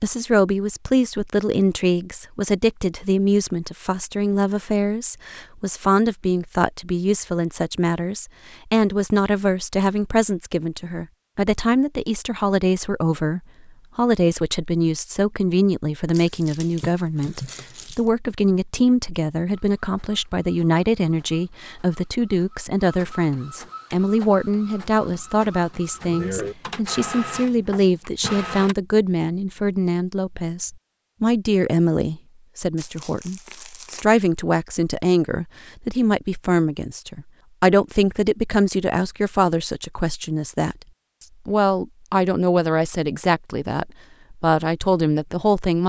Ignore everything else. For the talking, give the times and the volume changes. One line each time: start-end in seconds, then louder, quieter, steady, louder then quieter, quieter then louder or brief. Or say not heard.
0.0-45.8 steady.